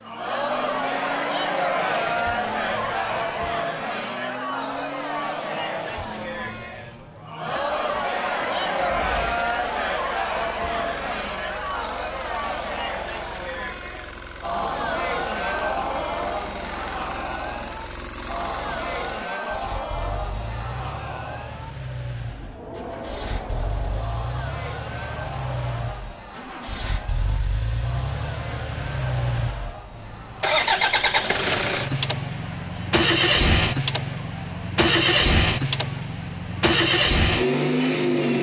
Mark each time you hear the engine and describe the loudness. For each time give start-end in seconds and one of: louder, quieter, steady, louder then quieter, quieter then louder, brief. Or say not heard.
0.0-38.3 louder.